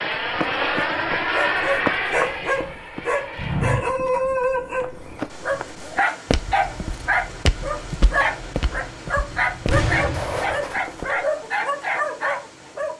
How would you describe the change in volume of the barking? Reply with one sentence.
The loudness of the barking stays about the same.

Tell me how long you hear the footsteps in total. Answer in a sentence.
The footsteps can be heard for 11 seconds in total.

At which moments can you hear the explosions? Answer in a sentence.
You can hear the explosions from 9.7 to 10.7 s.